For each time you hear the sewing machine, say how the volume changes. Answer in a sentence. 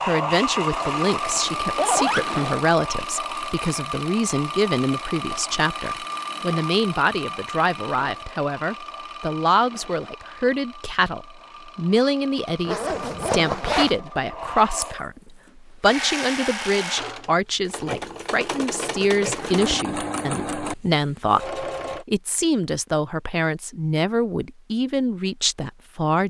You can hear the sewing machine from 0.0 to 22.1 s, getting quieter then louder.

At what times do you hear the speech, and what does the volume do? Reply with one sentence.
The speech can be heard from 0.0 to 26.2 s, at a steady volume.